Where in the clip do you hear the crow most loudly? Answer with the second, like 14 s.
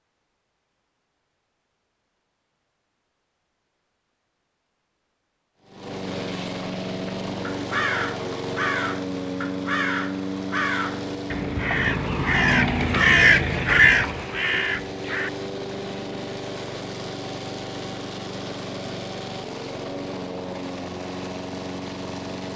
13 s.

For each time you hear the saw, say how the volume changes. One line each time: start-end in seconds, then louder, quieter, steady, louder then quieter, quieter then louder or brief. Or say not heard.
not heard.